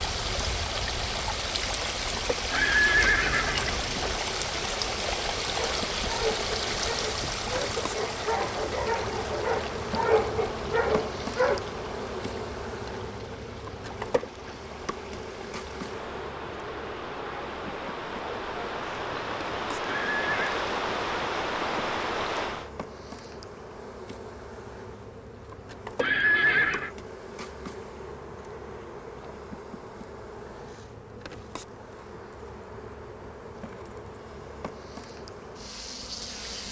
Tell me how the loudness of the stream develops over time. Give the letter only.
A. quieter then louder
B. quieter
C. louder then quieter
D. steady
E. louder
A.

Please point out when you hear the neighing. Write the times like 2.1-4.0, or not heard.
2.5-4.2, 19.8-20.6, 26.0-26.9.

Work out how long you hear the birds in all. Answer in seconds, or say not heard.
not heard.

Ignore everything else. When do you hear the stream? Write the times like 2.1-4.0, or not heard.
0.0-22.7.